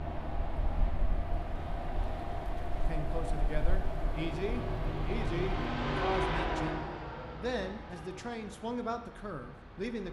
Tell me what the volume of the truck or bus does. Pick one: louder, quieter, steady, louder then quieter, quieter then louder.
louder then quieter.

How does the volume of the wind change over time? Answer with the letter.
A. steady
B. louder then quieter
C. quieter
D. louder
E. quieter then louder
A.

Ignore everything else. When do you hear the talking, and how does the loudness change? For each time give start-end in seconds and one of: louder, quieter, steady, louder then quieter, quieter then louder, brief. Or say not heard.
2.9-10.0 steady.